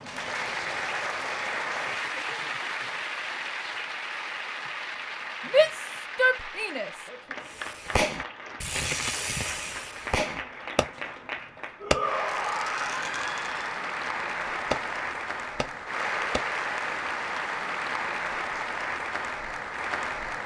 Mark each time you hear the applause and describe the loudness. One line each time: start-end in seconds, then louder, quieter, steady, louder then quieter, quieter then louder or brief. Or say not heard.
0.0-20.4 quieter then louder.